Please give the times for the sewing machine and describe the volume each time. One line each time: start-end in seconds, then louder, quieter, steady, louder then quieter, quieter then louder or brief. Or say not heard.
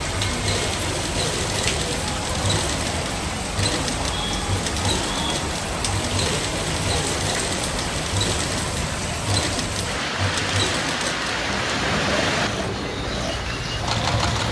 0.1-14.4 steady.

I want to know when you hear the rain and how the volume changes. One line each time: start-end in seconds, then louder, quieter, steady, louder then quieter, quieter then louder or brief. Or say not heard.
0.0-14.4 steady.